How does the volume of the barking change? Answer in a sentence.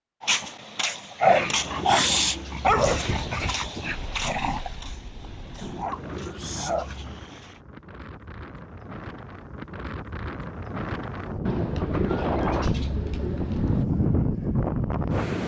The volume of the barking goes down, then up.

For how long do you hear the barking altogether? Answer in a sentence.
The barking can be heard for 7 seconds in total.